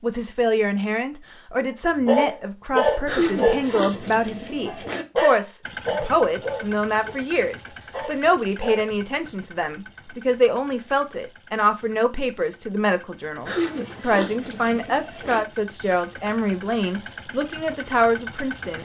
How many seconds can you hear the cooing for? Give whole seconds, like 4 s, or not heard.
4 s.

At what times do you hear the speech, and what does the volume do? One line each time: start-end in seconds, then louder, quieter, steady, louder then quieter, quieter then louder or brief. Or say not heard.
0.0-18.7 steady.